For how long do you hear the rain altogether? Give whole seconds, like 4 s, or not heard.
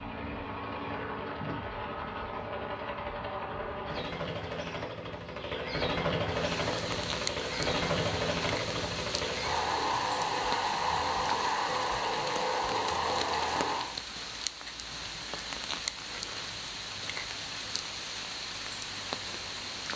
14 s.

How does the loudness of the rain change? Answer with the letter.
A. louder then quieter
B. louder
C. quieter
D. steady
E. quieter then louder
D.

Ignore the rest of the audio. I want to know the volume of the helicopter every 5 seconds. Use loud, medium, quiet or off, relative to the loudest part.
medium, loud, loud, off.